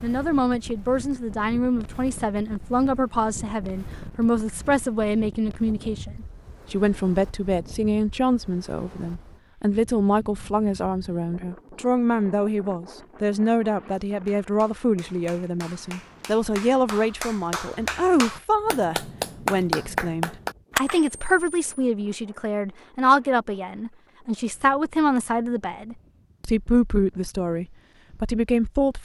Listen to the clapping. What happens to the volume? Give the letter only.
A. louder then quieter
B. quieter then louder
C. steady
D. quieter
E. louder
E.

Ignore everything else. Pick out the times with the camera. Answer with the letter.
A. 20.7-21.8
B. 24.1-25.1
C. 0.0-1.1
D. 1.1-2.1
A.